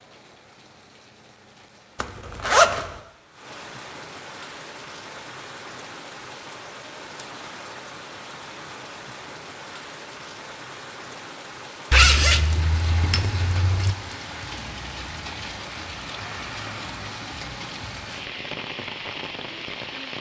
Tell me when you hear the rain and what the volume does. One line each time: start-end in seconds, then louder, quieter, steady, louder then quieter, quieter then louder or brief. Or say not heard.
0.0-20.1 louder.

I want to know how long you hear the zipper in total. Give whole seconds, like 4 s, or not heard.
3 s.